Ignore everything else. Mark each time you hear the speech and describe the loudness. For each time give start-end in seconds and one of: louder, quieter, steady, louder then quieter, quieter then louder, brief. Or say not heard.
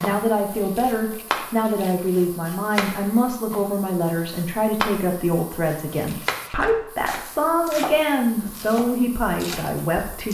0.0-10.3 steady.